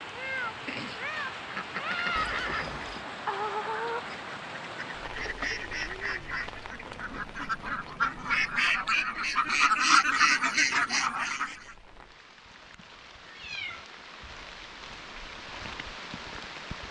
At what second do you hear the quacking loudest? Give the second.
10 s.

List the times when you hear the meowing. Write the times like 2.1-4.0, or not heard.
0.1-2.2, 13.2-13.9.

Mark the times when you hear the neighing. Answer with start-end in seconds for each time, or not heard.
2.1-3.0.